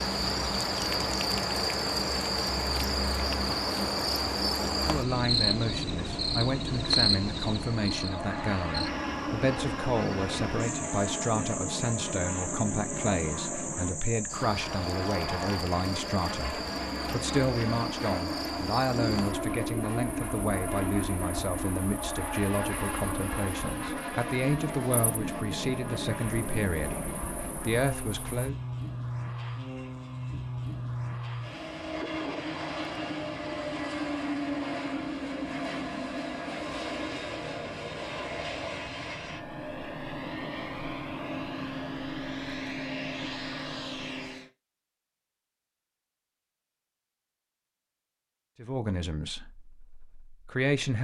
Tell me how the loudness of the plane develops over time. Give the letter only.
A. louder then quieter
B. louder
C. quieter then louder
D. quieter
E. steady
E.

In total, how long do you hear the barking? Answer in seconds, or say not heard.
not heard.